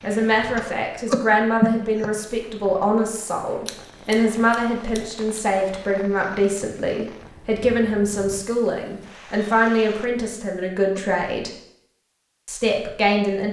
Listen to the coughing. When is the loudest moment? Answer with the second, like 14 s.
2 s.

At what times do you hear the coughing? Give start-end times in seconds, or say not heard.
0.5-2.1, 10.3-11.5.